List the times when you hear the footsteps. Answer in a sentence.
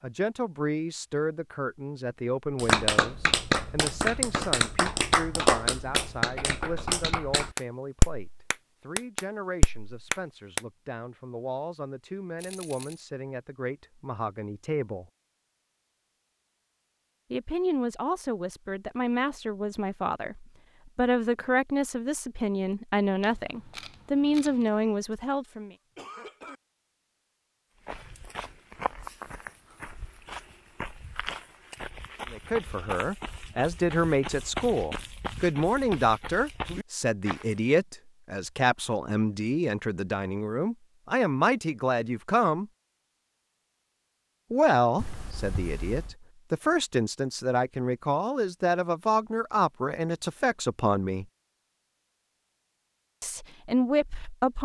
The footsteps can be heard from 27.9 to 37.5 s.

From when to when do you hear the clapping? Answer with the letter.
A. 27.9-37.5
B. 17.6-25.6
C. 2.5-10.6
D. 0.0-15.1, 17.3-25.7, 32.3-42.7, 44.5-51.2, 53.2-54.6
C.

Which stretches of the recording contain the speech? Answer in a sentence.
You can hear the speech from 0.0 to 15.1 s, from 17.3 to 25.7 s, from 32.3 to 42.7 s, from 44.5 to 51.2 s and from 53.2 to 54.6 s.